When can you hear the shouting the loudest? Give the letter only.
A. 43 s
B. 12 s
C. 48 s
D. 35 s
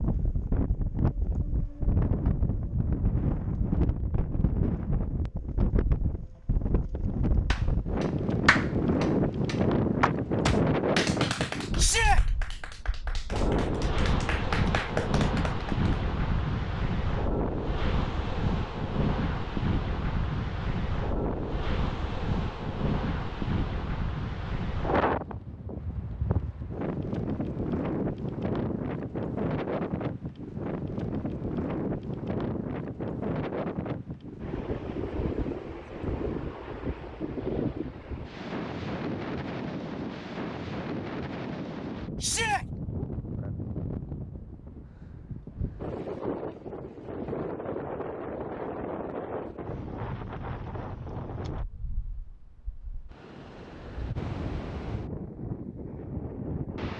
B.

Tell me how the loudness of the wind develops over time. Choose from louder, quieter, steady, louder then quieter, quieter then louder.
quieter.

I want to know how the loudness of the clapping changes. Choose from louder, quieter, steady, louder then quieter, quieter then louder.
quieter then louder.